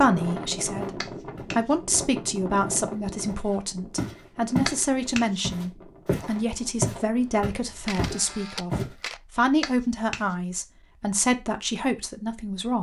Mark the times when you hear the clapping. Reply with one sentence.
You can hear the clapping from 1.0 to 1.7 s, from 4.7 to 5.2 s and from 9.6 to 10.3 s.